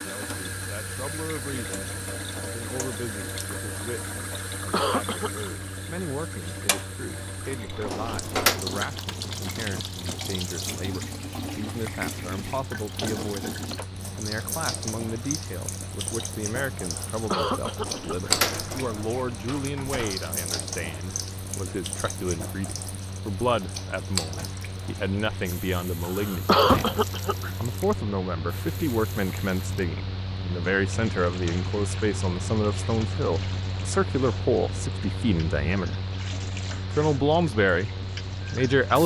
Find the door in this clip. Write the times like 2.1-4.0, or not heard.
7.7-8.6, 17.6-20.2, 26.6-27.1.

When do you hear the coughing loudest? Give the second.
27 s.